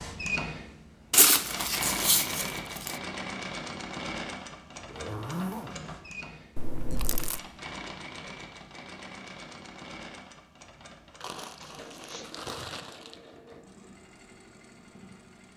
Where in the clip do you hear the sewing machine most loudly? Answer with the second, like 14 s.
2 s.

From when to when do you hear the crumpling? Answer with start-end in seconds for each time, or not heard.
1.1-3.0, 6.5-7.4, 11.2-13.2.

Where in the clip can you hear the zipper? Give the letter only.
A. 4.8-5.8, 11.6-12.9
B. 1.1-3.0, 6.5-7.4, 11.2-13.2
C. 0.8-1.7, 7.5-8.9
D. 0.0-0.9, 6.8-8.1
A.